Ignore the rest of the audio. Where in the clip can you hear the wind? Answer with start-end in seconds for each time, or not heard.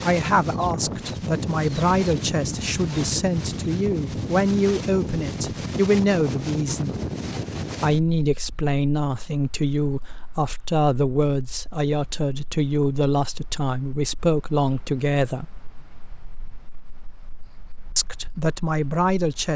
0.0-19.5.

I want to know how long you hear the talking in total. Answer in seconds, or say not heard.
16 s.